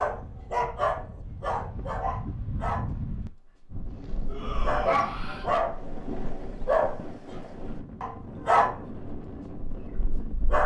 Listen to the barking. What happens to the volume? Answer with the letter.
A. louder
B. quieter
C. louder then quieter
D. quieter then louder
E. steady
D.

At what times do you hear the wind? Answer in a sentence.
The wind can be heard from 0.0 to 10.6 s.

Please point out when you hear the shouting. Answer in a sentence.
You can hear the shouting from 4.2 to 5.5 s.